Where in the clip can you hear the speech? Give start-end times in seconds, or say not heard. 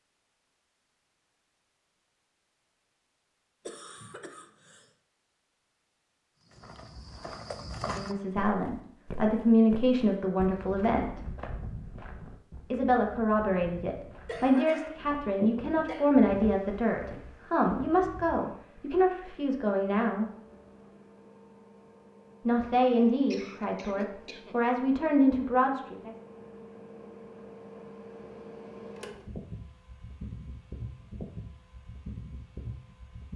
7.8-11.2, 12.7-20.3, 22.4-26.1.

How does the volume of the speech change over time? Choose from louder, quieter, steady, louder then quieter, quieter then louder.
steady.